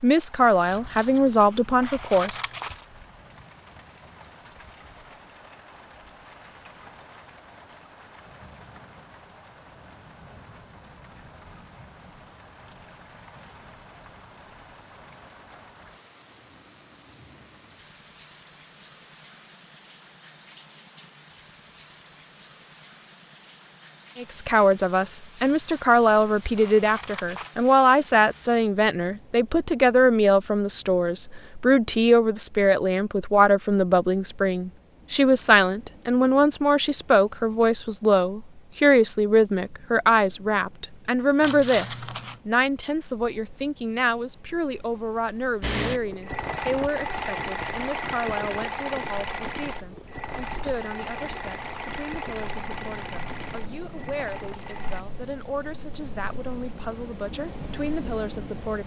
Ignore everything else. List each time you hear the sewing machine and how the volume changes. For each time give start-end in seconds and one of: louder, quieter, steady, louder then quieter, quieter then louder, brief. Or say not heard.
45.6-55.0 quieter.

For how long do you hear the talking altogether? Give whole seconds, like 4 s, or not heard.
37 s.